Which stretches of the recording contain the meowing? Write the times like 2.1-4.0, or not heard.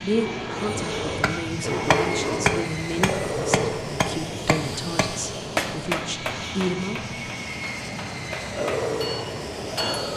not heard.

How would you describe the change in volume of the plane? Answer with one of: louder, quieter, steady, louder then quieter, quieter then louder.
steady.